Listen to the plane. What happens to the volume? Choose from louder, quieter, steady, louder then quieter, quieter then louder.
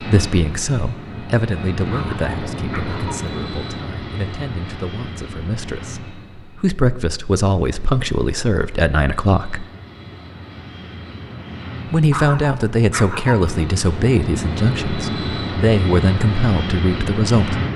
quieter then louder.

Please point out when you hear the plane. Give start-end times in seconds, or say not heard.
0.0-17.7.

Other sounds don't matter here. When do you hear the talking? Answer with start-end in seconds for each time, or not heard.
0.0-9.7, 11.9-17.6.